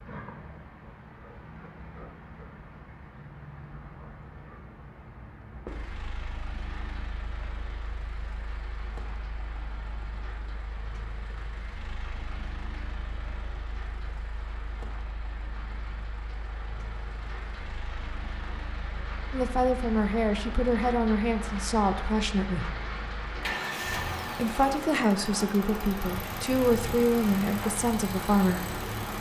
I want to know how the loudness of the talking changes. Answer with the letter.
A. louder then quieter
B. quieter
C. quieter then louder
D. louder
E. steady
E.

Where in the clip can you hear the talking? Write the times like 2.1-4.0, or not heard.
19.3-22.7, 24.4-28.8.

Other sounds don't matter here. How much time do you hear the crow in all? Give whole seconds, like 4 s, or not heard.
not heard.